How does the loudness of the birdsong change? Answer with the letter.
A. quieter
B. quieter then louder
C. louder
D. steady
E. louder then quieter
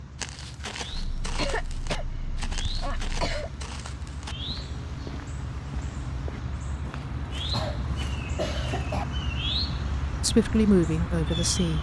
C.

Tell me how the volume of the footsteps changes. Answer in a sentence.
The volume of the footsteps goes down.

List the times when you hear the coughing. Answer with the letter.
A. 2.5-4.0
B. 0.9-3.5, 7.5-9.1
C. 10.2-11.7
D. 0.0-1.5
B.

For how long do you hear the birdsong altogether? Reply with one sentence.
The birdsong can be heard for 12 seconds in total.